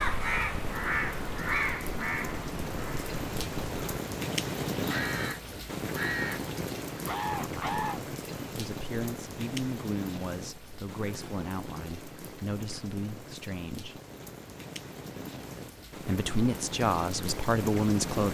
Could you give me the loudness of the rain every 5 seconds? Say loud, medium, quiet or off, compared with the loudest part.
loud, loud, medium, loud.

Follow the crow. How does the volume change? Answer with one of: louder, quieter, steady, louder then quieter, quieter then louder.
quieter then louder.